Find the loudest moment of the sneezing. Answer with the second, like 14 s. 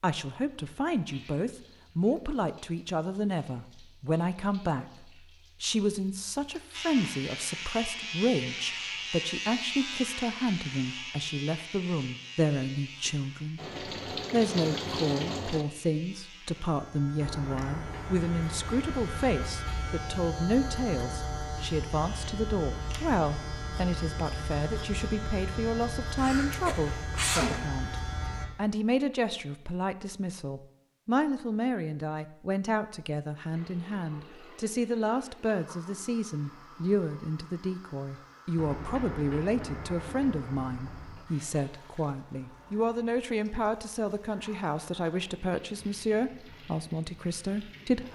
27 s.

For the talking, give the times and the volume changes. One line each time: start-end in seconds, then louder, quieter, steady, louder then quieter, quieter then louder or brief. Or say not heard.
0.0-13.6 steady
14.3-27.9 steady
28.6-48.1 steady.